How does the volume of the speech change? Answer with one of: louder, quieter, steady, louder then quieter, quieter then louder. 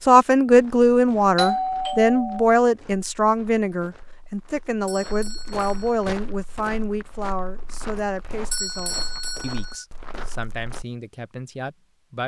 quieter.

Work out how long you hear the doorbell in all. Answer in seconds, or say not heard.
4 s.